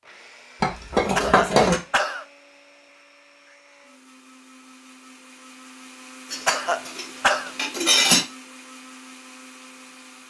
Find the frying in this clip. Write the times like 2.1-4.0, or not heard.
not heard.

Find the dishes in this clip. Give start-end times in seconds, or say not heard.
0.6-1.8, 6.3-8.2.